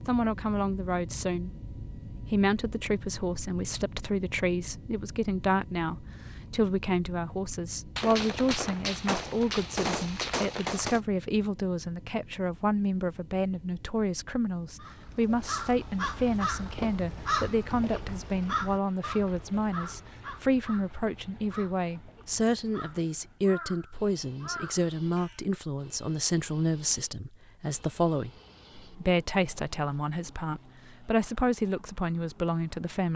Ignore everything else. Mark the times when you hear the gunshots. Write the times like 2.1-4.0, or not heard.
8.0-11.0.